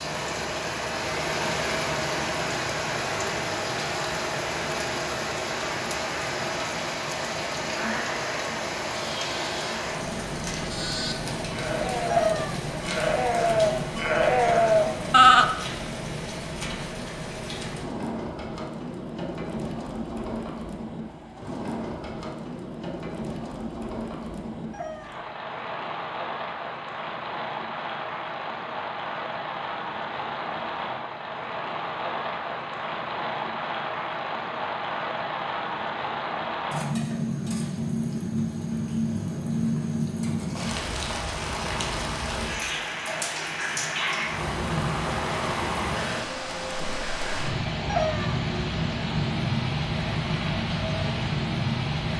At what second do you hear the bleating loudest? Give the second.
15 s.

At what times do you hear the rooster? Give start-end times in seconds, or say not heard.
12.1-12.6, 24.7-25.2, 47.9-48.4.